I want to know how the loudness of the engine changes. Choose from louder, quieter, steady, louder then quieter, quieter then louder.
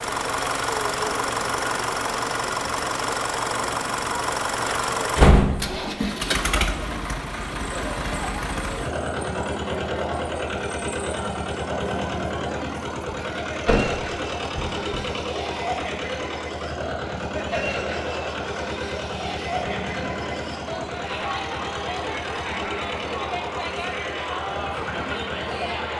quieter.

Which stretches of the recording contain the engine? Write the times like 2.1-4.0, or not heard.
0.0-25.9.